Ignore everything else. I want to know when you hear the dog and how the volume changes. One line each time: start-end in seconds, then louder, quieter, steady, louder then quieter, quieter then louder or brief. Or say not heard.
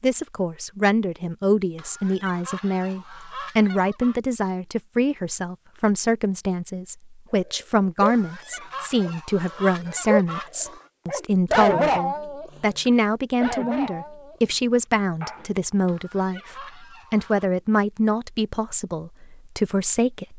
7.3-15.4 louder then quieter.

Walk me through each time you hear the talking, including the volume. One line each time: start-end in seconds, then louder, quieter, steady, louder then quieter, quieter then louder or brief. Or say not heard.
0.0-20.3 steady.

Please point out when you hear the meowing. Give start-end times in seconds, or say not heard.
not heard.